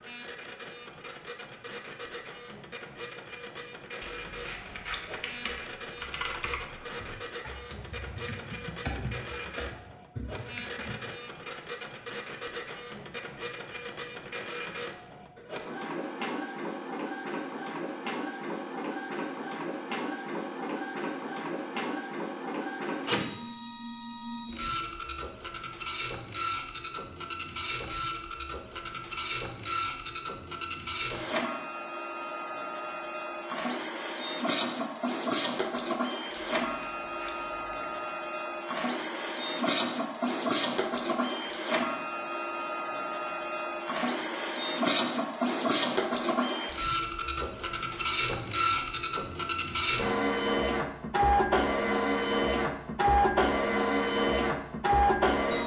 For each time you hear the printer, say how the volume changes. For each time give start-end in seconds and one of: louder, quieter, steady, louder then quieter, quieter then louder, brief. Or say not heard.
0.0-55.6 louder.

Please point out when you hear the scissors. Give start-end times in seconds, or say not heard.
4.0-5.0, 36.4-37.9.